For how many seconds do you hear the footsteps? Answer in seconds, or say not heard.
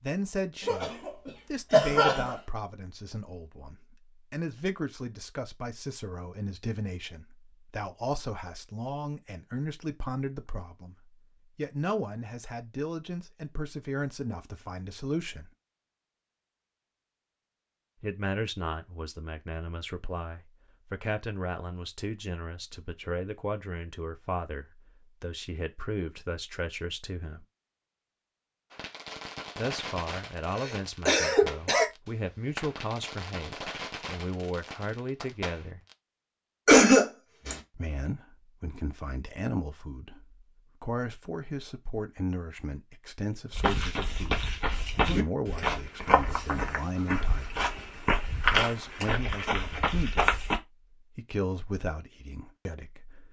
7 s.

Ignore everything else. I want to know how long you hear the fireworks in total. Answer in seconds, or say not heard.
7 s.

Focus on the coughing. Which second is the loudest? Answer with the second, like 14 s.
37 s.